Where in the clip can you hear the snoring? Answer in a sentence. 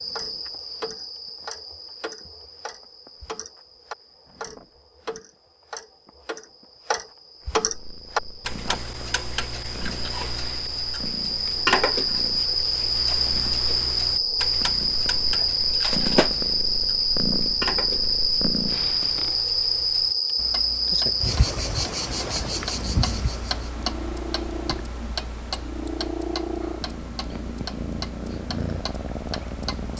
The snoring can't be heard in this clip.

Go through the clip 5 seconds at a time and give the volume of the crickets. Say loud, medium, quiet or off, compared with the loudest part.
quiet, quiet, loud, loud, loud, off.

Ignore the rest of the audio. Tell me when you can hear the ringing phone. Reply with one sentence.
You can hear the ringing phone from 15.3 to 16.3 s.